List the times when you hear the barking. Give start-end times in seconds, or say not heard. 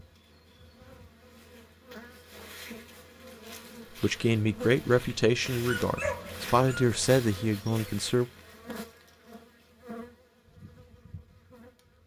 5.7-6.9.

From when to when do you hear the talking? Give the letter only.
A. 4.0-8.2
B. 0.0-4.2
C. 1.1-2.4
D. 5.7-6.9
A.